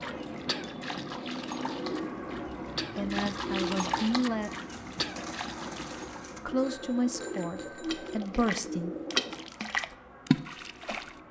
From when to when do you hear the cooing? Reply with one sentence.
You can hear the cooing from 1.6 to 9.4 s.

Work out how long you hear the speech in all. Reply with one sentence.
The speech can be heard for 4 seconds in total.